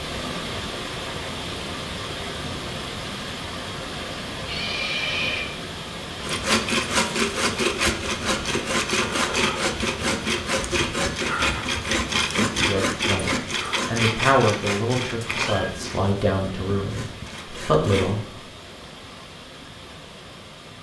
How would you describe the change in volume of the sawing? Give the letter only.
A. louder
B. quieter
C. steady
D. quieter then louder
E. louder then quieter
B.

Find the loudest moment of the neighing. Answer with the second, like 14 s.
5 s.